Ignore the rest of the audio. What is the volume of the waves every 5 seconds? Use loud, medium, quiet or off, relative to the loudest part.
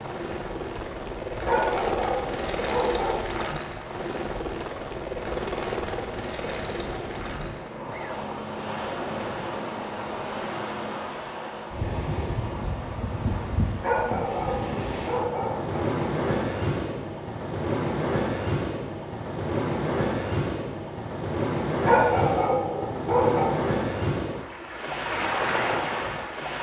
quiet, medium, medium, loud, loud, loud.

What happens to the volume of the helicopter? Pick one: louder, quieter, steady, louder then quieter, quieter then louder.
quieter.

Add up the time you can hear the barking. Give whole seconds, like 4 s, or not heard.
6 s.